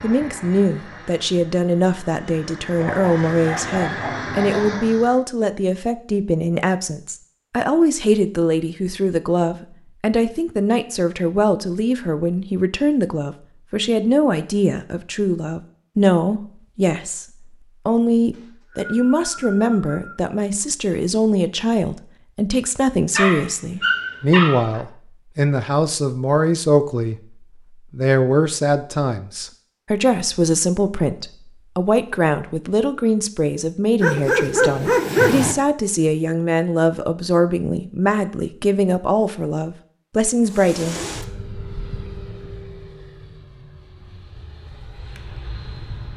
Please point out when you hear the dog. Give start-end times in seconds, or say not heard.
2.8-4.8, 23.1-24.8, 34.0-35.5.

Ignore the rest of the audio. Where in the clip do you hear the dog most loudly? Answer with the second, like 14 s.
35 s.